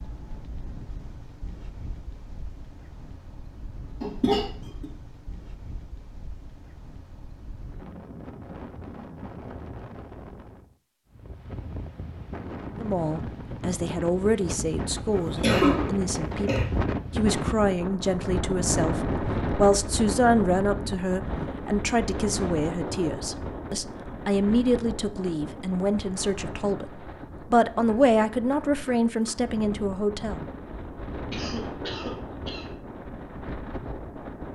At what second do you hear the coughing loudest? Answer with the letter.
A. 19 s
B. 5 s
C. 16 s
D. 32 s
C.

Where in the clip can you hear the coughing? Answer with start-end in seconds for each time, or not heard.
4.0-4.8, 15.1-16.6, 31.3-32.7.